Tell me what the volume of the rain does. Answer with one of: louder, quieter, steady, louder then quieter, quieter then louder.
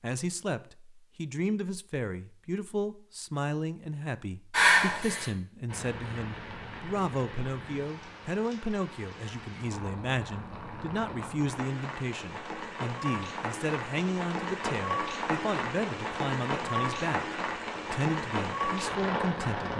louder.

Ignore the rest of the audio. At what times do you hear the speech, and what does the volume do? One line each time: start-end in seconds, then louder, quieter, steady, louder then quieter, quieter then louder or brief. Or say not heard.
0.0-19.7 steady.